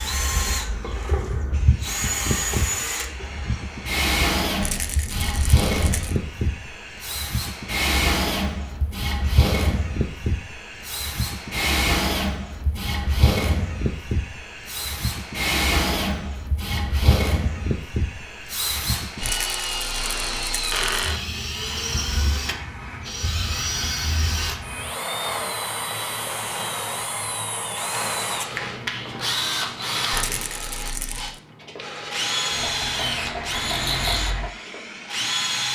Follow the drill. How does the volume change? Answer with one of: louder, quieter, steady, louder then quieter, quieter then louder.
steady.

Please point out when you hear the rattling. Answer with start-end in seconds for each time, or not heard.
4.6-6.2, 19.2-21.1, 30.1-31.4.